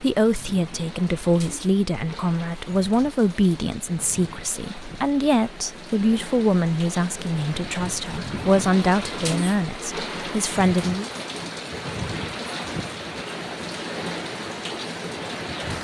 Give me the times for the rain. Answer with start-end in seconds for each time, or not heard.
0.0-15.8.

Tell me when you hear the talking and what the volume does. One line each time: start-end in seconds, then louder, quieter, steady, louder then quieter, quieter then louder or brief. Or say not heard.
0.0-11.1 steady.